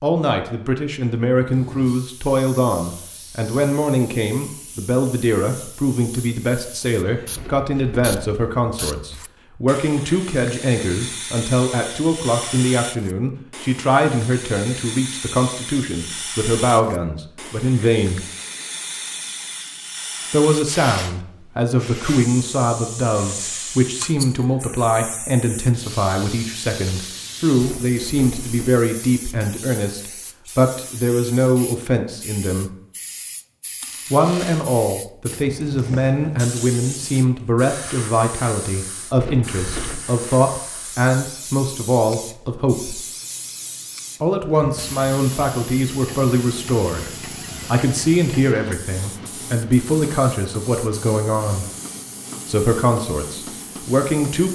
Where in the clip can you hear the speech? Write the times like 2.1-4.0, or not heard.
0.0-18.2, 20.3-32.8, 34.1-43.0, 44.2-51.7, 52.5-54.5.